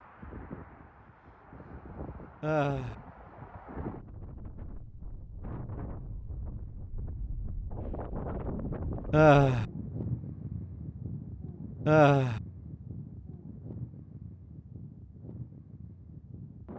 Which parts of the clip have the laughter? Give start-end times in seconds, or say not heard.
2.4-3.0, 9.1-9.7, 11.8-12.4.